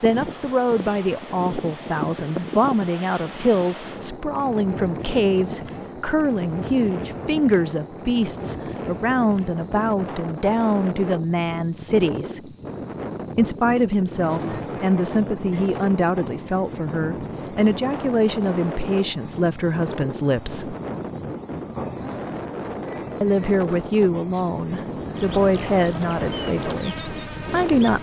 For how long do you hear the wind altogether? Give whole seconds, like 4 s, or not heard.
28 s.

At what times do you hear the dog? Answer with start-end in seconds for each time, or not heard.
not heard.